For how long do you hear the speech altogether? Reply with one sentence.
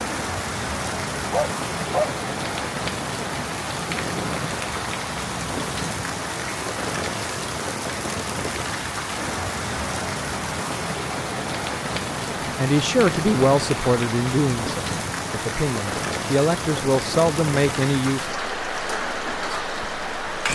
The speech can be heard for 6 seconds in total.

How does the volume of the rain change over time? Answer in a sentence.
The volume of the rain stays about the same.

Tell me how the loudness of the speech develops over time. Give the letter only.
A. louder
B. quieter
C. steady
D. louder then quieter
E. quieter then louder
E.